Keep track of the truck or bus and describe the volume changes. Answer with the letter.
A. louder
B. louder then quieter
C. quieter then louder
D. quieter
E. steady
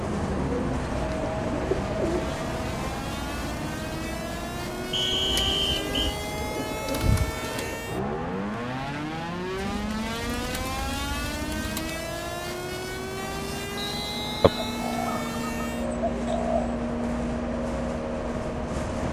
C.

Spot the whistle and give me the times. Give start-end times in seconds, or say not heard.
4.9-6.2, 13.8-14.8.